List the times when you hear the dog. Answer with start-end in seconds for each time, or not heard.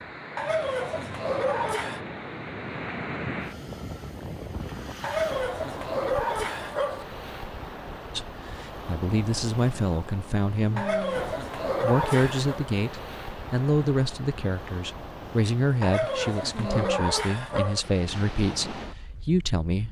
0.3-2.0, 5.0-7.0, 10.8-12.6, 15.8-17.8.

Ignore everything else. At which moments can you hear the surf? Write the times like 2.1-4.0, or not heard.
0.0-19.8.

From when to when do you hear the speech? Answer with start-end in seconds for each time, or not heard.
8.2-10.9, 11.8-19.8.